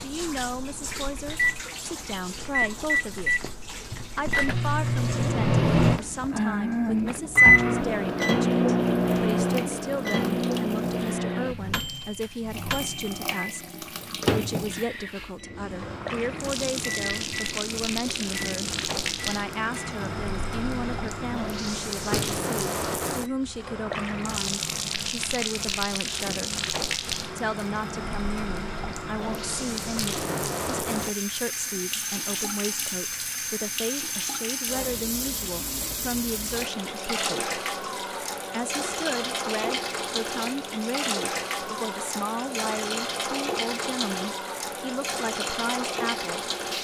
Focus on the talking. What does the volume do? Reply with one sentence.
The volume of the talking stays about the same.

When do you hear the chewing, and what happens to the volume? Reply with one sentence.
The chewing can't be heard in this clip.